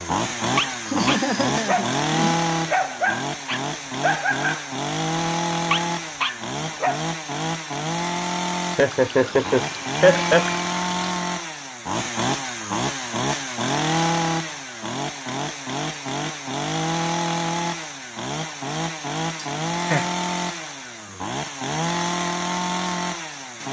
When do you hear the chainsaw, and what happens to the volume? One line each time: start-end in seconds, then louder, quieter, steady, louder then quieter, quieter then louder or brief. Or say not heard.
0.0-23.6 steady.